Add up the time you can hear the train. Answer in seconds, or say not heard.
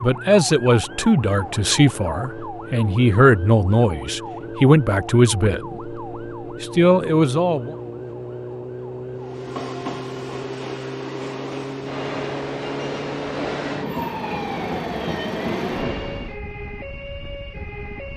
7 s.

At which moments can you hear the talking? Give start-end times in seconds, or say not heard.
0.0-6.0, 6.6-7.8.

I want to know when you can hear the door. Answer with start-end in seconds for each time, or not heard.
not heard.